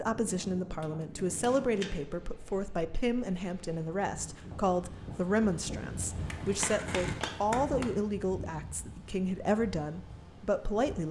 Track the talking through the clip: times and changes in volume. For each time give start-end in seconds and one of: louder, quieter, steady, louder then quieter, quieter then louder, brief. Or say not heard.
0.0-11.0 steady.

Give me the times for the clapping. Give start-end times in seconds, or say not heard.
0.8-1.5, 6.3-7.9.